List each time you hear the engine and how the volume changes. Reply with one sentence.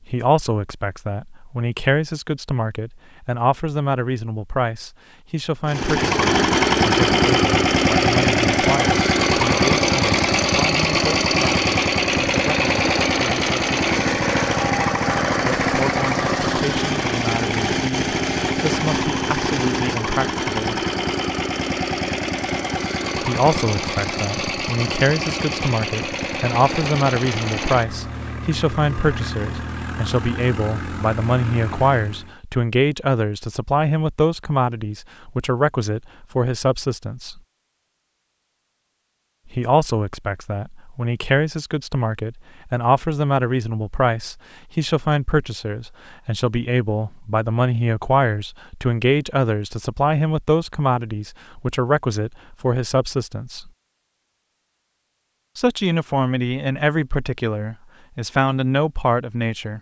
The engine can be heard from 5.7 to 32.4 s, getting quieter.